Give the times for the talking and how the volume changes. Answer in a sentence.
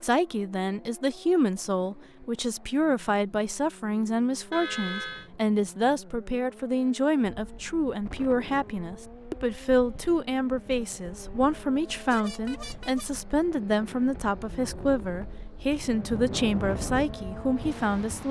You can hear the talking from 0.0 to 18.2 s, at a steady volume.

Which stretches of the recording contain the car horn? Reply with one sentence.
The car horn can be heard from 4.5 to 5.3 s and from 11.9 to 13.1 s.